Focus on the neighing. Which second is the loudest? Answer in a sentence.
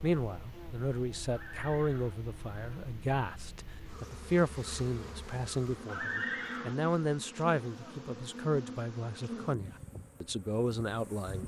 The loudest moment of the neighing is at 6 seconds.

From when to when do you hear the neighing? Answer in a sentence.
The neighing can be heard from 1.2 to 2.1 s and from 5.8 to 6.8 s.